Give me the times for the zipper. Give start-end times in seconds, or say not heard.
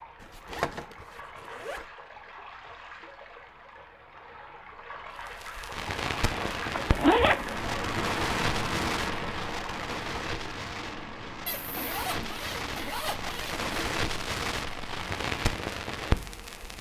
0.2-1.9, 6.3-7.7, 11.4-13.8.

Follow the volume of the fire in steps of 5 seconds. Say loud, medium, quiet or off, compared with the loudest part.
off, loud, loud, loud.